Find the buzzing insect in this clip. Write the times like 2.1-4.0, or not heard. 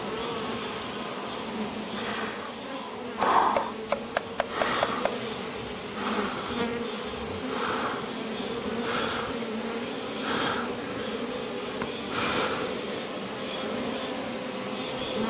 0.0-15.2.